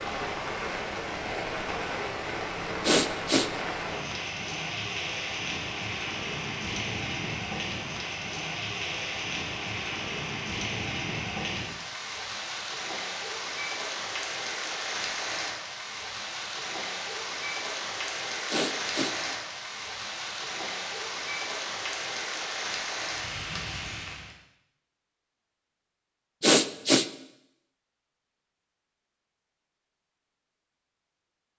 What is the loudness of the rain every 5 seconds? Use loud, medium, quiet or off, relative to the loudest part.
loud, loud, loud, loud, loud, off, off.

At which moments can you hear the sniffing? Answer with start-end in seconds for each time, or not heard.
2.9-3.5, 18.5-19.1, 26.4-27.1.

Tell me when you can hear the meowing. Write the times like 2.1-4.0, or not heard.
not heard.